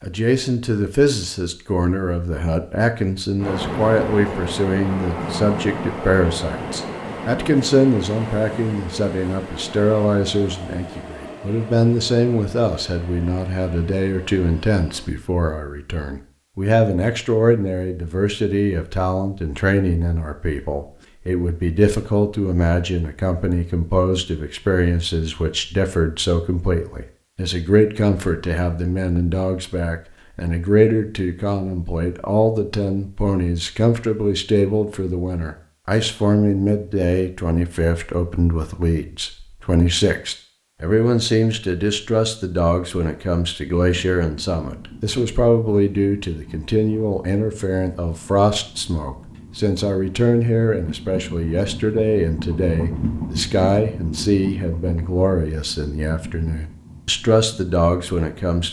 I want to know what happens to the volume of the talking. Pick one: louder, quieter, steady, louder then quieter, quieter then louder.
steady.